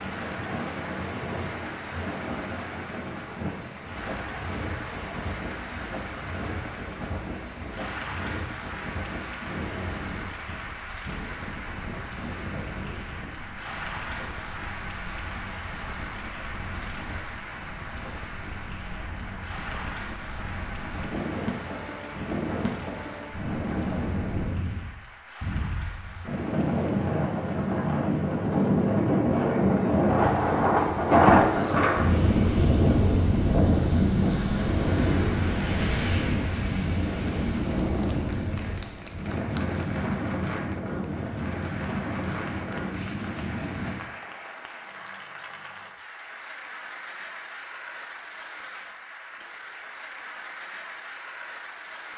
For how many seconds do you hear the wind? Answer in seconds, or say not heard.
44 s.